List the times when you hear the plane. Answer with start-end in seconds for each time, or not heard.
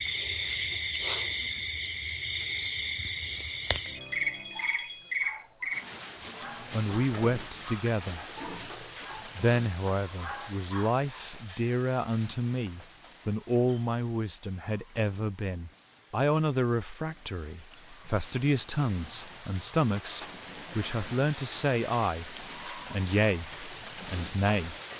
not heard.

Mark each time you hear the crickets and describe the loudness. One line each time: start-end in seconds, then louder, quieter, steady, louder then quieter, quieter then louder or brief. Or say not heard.
0.0-24.9 quieter then louder.